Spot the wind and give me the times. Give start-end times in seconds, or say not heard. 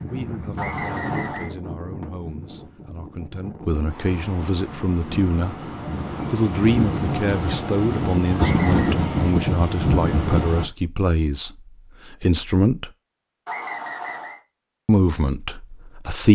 0.0-10.7.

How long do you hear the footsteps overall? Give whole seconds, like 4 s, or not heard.
not heard.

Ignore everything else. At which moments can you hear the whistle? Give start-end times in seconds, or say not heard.
0.6-1.5, 8.3-9.0, 13.4-14.4.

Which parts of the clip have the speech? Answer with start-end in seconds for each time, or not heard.
0.1-5.5, 6.3-12.9, 14.8-16.3.